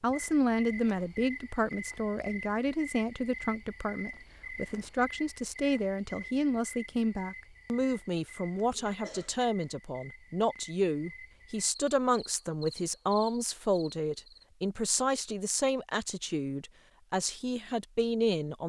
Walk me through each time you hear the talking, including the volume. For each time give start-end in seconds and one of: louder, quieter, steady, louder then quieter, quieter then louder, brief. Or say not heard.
0.0-18.6 steady.